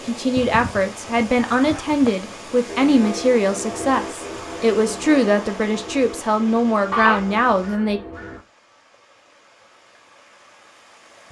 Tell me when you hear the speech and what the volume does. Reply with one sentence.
You can hear the speech from 0.0 to 8.0 s, at a steady volume.